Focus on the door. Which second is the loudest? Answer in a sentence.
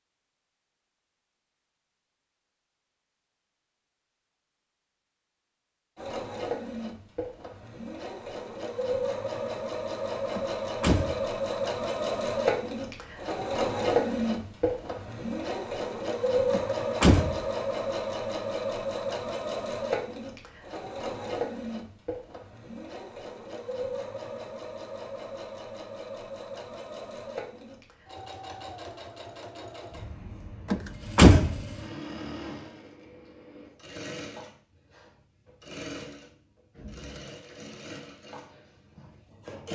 The volume of the door peaks at 31 seconds.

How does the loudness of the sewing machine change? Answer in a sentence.
The loudness of the sewing machine goes down.